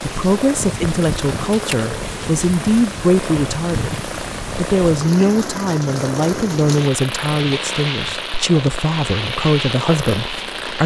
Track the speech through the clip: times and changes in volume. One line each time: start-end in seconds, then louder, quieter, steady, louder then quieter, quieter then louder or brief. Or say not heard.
0.0-10.8 steady.